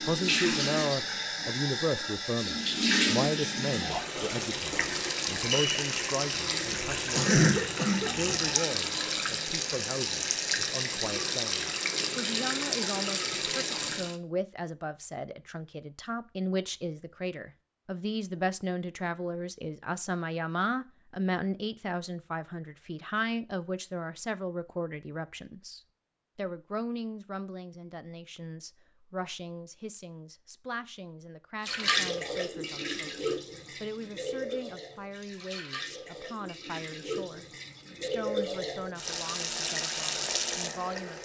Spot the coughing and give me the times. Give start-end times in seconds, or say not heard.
6.3-8.4.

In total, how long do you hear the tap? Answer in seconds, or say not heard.
24 s.